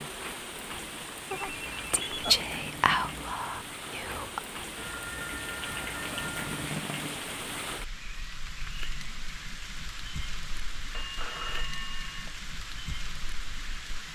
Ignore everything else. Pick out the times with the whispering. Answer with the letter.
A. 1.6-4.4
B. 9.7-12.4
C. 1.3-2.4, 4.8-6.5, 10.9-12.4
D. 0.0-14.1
A.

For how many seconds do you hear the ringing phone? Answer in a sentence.
You can hear the ringing phone for 4 seconds altogether.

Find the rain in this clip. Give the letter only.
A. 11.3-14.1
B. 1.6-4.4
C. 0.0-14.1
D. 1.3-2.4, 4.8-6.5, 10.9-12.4
C.